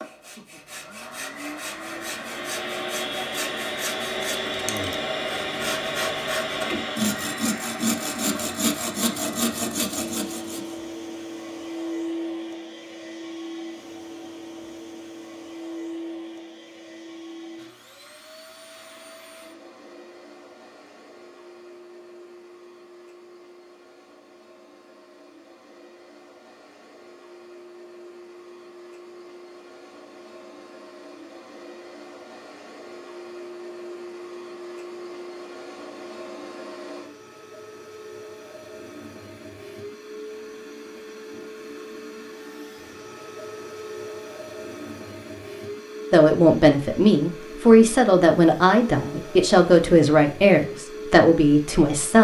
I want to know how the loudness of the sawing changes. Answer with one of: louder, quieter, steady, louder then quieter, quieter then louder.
louder.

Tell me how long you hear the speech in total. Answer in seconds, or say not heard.
6 s.